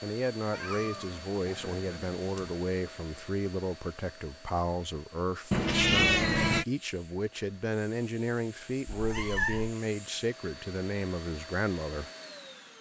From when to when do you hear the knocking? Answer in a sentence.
The knocking can't be heard in this clip.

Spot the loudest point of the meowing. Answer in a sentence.
The volume of the meowing peaks at 6 seconds.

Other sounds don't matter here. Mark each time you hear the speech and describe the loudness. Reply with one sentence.
The speech can be heard from 0.0 to 12.1 s, at a steady volume.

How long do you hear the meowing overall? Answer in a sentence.
You can hear the meowing for 4 seconds altogether.